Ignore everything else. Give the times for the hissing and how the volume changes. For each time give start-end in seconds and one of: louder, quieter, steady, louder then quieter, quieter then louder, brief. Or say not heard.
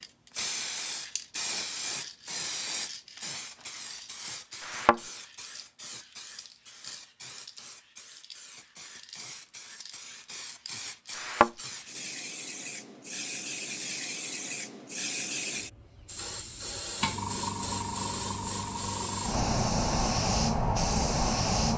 0.0-21.7 quieter then louder.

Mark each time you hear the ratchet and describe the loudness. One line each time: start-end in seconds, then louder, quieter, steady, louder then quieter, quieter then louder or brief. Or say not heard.
not heard.